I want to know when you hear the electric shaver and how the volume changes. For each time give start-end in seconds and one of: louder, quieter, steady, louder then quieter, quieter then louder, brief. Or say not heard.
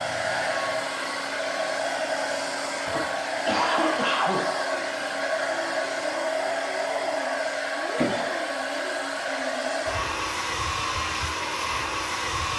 not heard.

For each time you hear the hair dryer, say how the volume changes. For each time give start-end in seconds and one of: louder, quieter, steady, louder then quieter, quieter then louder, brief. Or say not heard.
0.0-12.5 steady.